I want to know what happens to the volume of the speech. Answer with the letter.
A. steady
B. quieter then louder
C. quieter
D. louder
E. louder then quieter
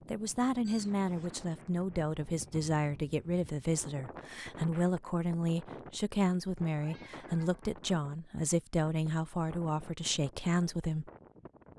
A.